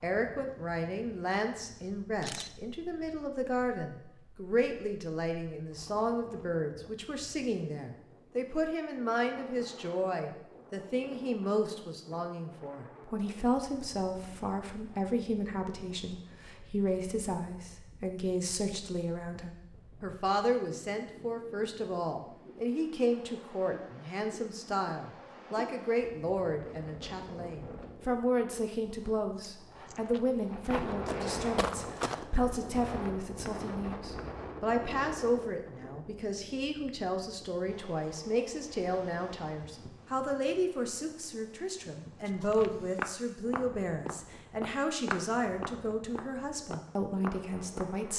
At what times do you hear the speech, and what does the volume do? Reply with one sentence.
You can hear the speech from 0.0 to 48.1 s, at a steady volume.